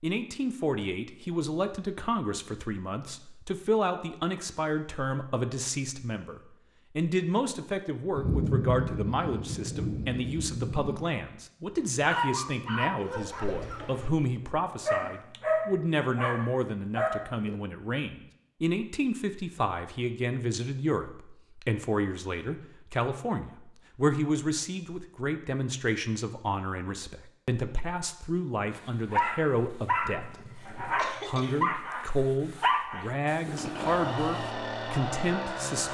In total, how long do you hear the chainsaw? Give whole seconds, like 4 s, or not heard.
2 s.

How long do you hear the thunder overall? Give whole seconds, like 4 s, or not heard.
3 s.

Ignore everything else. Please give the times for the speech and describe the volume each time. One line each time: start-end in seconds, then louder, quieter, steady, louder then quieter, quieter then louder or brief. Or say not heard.
0.0-35.8 steady.